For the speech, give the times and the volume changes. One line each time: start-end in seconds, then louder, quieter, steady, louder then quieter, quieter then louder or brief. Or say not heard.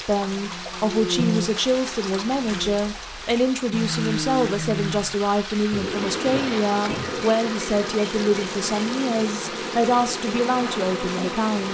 0.0-11.6 steady.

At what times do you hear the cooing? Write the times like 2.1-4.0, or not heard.
5.7-7.3.